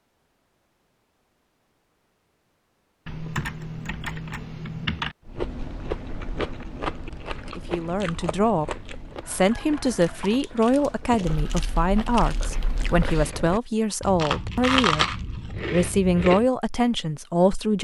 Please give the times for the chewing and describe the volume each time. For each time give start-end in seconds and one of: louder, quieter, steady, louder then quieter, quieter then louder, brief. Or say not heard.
5.2-16.4 quieter then louder.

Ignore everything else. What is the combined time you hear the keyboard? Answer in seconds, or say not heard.
4 s.